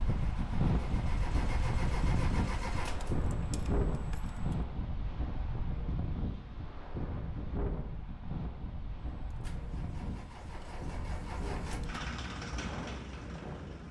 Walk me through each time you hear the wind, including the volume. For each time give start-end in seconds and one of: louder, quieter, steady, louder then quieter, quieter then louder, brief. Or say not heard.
0.0-13.8 quieter.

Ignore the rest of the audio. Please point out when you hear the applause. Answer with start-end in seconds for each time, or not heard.
not heard.